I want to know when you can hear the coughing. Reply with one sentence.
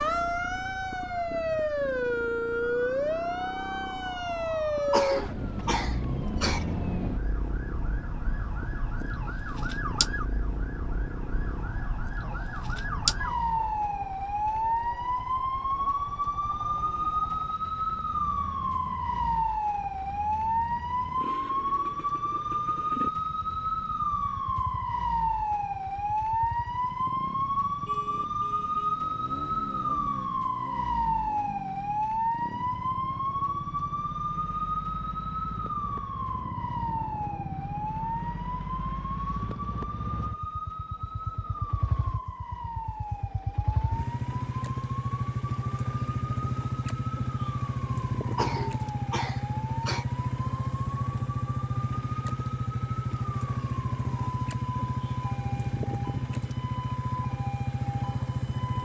The coughing can be heard from 4.9 to 6.7 s and from 48.4 to 50.0 s.